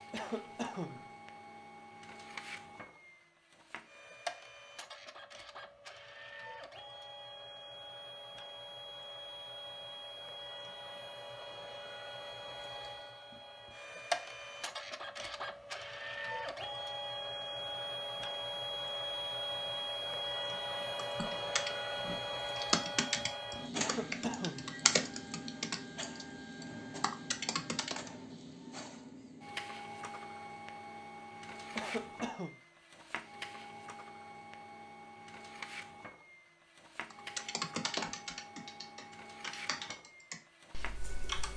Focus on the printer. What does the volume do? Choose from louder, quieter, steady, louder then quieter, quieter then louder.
louder then quieter.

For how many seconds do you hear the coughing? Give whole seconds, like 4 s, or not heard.
3 s.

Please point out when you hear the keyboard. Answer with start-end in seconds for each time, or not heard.
20.9-28.1, 37.1-41.5.